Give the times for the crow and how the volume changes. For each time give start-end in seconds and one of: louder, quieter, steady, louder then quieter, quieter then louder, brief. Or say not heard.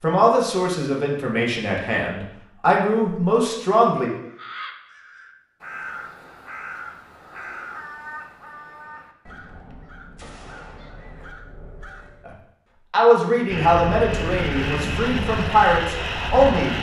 4.2-12.3 quieter.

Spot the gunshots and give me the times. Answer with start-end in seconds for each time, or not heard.
10.2-11.3.